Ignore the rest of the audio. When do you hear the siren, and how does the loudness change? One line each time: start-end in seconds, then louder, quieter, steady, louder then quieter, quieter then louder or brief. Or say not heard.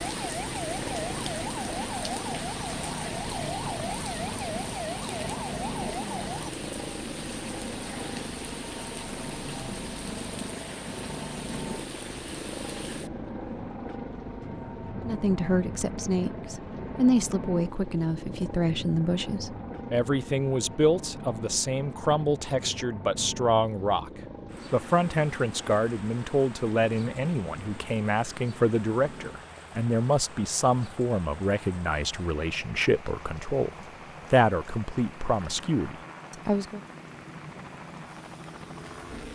0.0-6.5 steady.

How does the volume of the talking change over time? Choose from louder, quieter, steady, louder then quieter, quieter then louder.
steady.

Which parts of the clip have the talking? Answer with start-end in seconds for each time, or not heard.
15.1-24.1, 24.7-36.8.